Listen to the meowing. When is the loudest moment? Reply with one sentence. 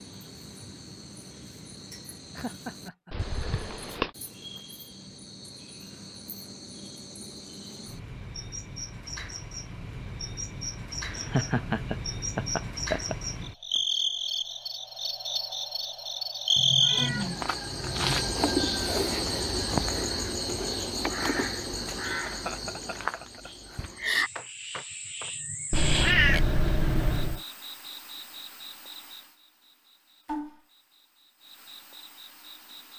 The loudest moment of the meowing is at 26 seconds.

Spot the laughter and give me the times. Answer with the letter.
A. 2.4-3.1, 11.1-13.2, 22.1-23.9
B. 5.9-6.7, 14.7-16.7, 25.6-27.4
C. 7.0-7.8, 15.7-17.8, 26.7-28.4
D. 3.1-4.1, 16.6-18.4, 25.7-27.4
A.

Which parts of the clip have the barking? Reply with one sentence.
The barking can't be heard in this clip.